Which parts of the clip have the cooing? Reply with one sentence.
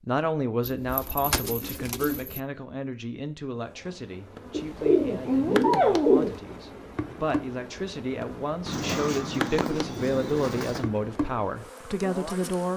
You can hear the cooing from 0.6 to 2.4 s, from 4.5 to 6.4 s and from 8.7 to 10.8 s.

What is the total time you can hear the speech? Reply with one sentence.
The speech can be heard for 13 seconds in total.